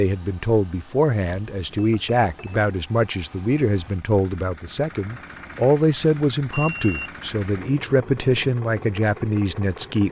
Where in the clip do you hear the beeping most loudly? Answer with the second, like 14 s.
2 s.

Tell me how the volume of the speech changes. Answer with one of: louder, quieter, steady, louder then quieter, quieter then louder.
steady.